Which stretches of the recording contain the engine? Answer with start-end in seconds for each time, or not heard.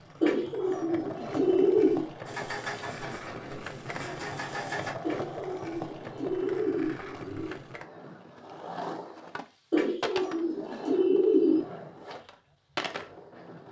2.2-5.0.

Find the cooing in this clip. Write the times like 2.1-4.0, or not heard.
0.2-2.0, 5.0-7.6, 9.7-11.7.